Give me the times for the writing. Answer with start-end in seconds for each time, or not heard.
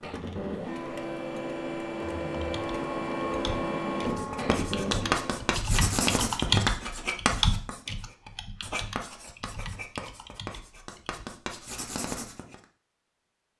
4.0-12.6.